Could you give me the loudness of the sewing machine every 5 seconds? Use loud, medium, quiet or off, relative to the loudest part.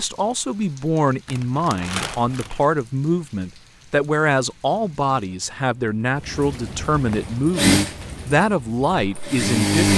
off, loud.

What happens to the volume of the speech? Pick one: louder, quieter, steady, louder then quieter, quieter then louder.
steady.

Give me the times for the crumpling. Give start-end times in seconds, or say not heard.
1.2-2.6.